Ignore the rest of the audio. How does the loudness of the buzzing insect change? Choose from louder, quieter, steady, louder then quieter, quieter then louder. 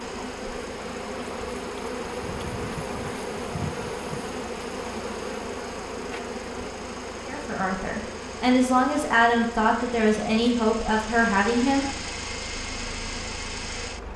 quieter.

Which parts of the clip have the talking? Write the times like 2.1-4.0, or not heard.
7.2-11.8.